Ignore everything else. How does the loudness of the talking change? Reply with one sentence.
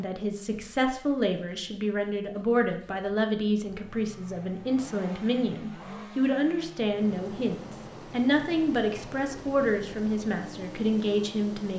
The loudness of the talking stays about the same.